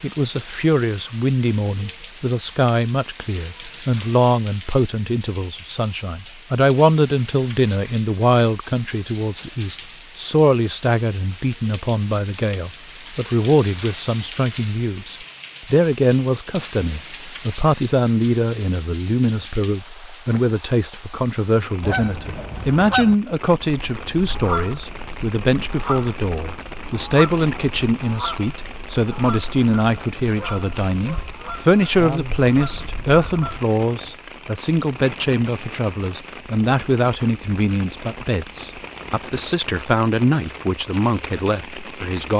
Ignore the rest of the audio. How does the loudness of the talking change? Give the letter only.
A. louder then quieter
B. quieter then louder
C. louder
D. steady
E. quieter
D.